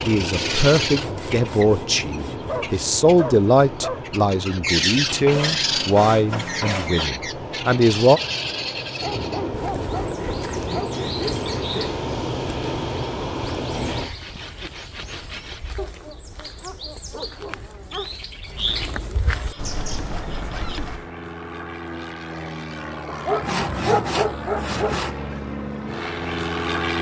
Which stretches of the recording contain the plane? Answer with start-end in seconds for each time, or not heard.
0.0-14.1, 19.5-26.9.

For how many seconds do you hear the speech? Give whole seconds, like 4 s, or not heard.
8 s.